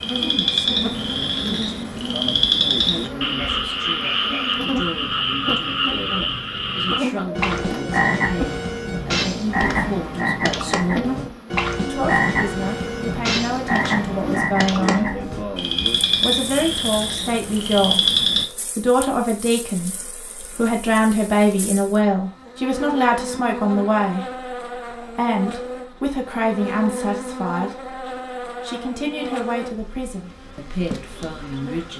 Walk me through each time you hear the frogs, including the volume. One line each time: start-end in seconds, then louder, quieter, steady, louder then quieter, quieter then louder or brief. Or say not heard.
0.0-18.4 steady.